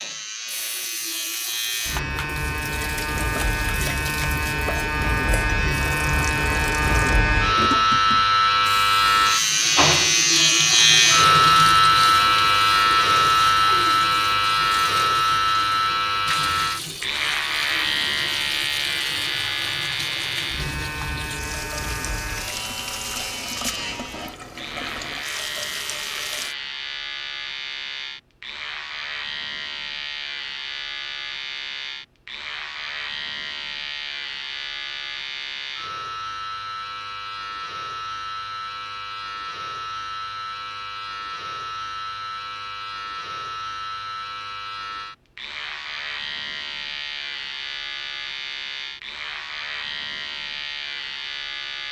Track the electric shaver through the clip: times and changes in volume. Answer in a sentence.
The electric shaver can be heard from 0.0 to 51.8 s, getting quieter.